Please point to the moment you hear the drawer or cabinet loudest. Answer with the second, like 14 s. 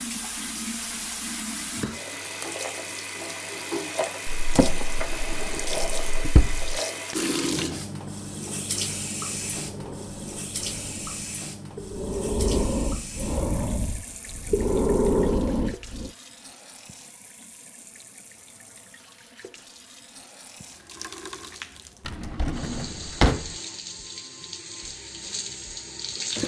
23 s.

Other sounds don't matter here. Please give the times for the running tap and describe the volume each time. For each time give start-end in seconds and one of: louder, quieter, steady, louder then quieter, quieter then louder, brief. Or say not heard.
0.0-26.4 quieter then louder.